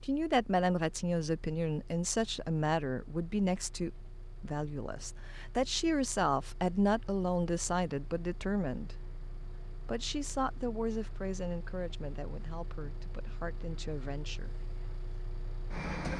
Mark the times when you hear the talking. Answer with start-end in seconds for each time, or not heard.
0.0-8.9, 9.8-14.5.